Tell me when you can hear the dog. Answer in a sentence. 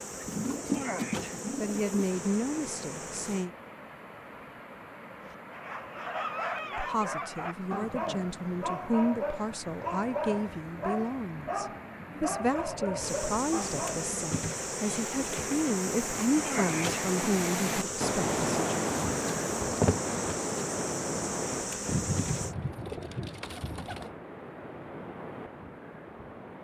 The dog can be heard from 5.2 to 14.2 s.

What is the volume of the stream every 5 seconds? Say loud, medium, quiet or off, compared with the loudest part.
quiet, quiet, quiet, loud, medium, medium.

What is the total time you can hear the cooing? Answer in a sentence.
You can hear the cooing for 4 seconds altogether.